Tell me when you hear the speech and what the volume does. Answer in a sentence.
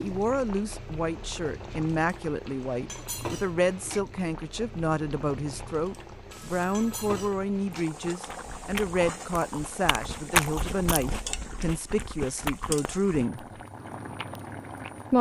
The speech can be heard from 0.0 to 13.4 s, at a steady volume.